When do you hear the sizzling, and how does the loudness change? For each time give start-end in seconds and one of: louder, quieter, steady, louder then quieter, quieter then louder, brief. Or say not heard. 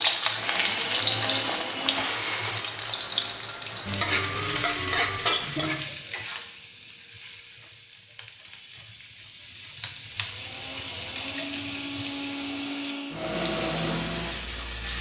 0.0-14.9 quieter then louder.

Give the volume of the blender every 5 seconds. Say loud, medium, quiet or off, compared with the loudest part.
loud, off, loud.